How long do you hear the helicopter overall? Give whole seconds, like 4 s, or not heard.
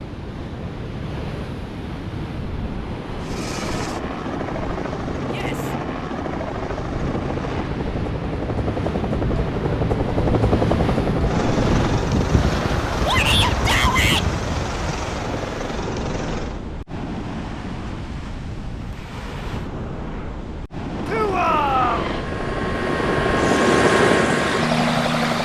18 s.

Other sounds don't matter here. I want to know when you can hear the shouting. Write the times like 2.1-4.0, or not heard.
5.2-5.8, 13.1-14.2, 21.1-22.1.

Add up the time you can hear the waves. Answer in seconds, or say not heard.
25 s.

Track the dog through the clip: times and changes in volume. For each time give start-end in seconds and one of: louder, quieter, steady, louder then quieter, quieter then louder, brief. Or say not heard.
not heard.